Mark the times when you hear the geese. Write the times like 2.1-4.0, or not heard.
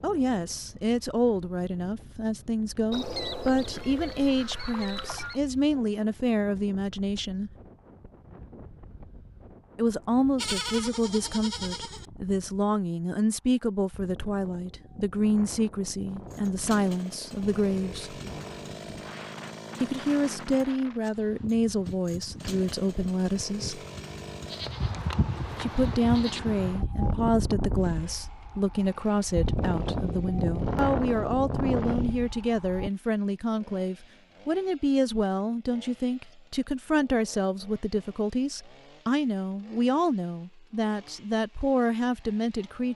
2.9-5.4.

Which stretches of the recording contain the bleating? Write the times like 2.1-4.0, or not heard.
10.3-12.1, 24.4-26.4.